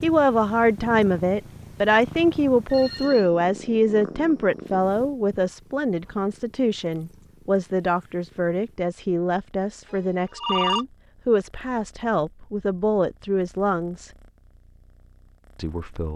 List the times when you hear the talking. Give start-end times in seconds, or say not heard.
0.0-14.1, 15.6-16.1.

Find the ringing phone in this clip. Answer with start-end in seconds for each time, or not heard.
2.7-3.3, 9.9-10.8.